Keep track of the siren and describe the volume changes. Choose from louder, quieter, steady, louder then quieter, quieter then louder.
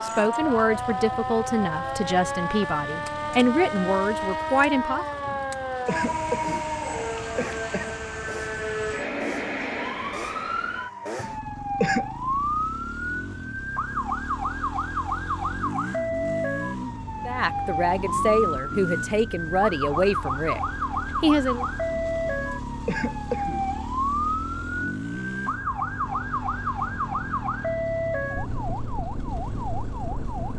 steady.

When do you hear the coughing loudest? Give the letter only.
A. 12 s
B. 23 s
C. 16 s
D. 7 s
A.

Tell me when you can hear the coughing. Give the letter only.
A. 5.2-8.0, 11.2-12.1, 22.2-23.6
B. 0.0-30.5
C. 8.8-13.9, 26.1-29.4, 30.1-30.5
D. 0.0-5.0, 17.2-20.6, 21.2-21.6
A.